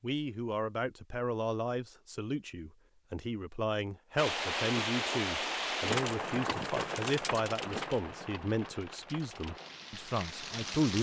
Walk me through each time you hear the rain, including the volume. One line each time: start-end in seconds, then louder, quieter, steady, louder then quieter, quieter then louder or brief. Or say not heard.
4.2-10.9 quieter.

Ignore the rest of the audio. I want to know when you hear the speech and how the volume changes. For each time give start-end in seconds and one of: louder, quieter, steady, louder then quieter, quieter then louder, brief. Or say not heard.
0.0-10.9 steady.